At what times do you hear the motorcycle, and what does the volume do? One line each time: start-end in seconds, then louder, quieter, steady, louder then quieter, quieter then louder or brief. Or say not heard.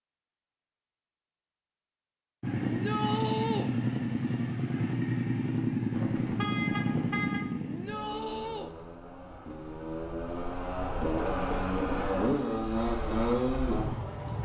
2.4-14.3 quieter then louder.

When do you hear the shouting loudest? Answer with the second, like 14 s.
3 s.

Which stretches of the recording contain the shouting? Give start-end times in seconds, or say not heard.
2.6-3.7, 7.7-8.7.